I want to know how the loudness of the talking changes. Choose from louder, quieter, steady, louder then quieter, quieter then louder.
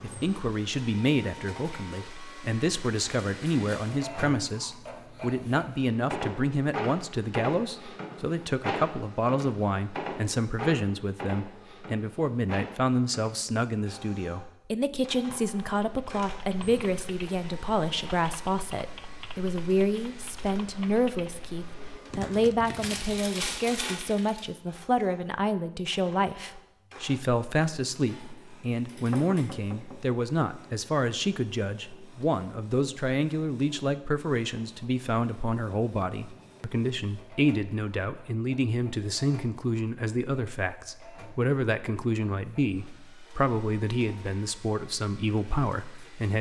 steady.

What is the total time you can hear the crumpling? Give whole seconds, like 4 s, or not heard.
2 s.